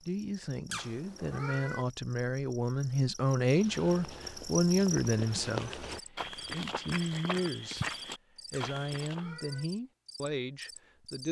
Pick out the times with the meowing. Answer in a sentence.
You can hear the meowing from 0.7 to 1.9 s and from 8.5 to 9.7 s.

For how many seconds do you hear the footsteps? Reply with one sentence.
You can hear the footsteps for 6 seconds altogether.